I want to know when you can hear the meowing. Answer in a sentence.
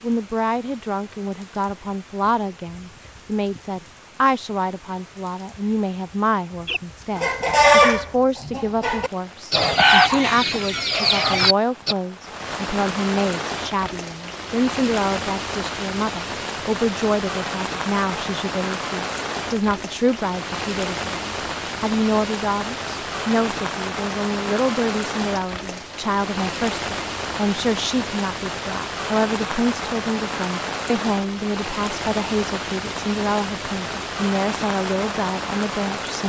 The meowing can't be heard in this clip.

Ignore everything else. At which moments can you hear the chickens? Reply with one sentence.
The chickens can be heard from 6.7 to 11.9 s.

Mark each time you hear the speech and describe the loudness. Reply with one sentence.
The speech can be heard from 0.0 to 36.2 s, at a steady volume.